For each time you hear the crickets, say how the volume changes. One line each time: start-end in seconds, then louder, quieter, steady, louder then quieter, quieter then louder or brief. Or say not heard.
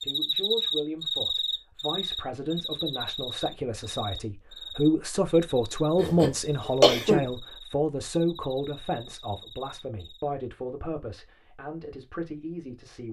0.0-10.3 quieter.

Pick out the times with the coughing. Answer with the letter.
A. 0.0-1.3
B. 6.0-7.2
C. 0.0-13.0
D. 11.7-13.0
B.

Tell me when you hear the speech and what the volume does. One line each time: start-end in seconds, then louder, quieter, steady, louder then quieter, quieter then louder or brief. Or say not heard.
0.0-13.0 louder then quieter.